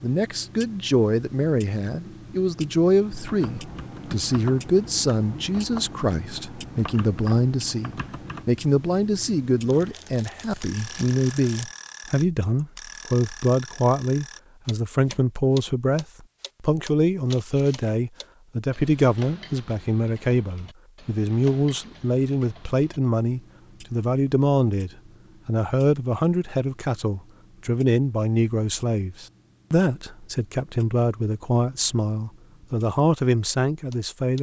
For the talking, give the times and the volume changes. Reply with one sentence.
You can hear the talking from 0.0 to 34.3 s, at a steady volume.